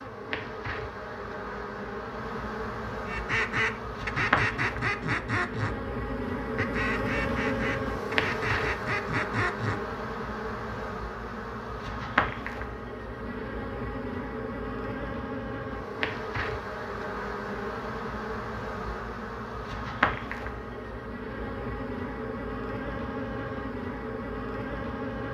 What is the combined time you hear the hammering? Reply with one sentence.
The hammering can't be heard in this clip.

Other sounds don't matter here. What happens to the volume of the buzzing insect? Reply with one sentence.
The volume of the buzzing insect stays about the same.